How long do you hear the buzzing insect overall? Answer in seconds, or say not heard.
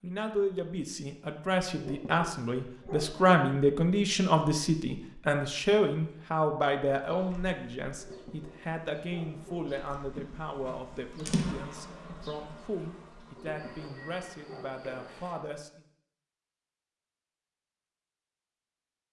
8 s.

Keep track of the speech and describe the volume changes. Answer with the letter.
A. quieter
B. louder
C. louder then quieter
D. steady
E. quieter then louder
A.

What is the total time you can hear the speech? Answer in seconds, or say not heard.
16 s.